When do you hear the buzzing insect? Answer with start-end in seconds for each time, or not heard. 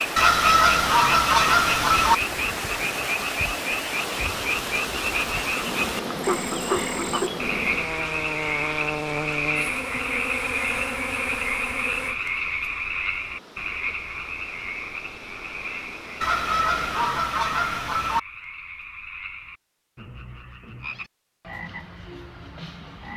5.5-12.2.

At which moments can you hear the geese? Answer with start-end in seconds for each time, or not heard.
0.1-2.1, 16.2-18.2.